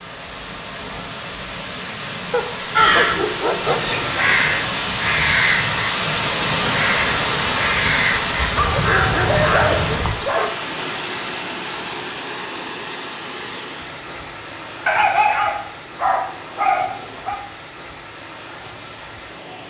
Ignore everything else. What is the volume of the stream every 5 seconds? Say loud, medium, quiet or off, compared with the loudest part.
medium, loud, medium, quiet.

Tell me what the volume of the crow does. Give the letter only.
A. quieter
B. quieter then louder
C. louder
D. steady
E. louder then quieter
D.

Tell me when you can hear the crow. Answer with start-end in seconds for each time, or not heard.
2.8-10.2.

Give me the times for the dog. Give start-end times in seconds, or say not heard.
2.3-4.0, 8.6-10.5, 14.8-17.4.